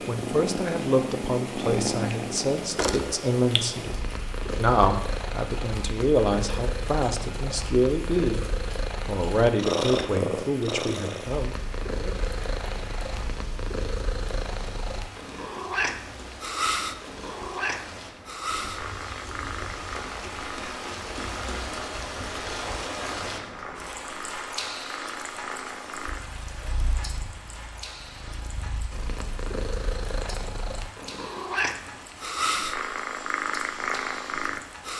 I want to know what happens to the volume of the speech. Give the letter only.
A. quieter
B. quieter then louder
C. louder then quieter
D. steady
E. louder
D.